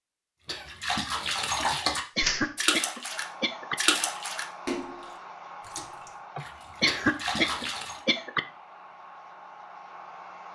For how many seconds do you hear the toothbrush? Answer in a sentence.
The toothbrush can't be heard in this clip.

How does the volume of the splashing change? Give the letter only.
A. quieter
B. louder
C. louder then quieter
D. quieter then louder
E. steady
D.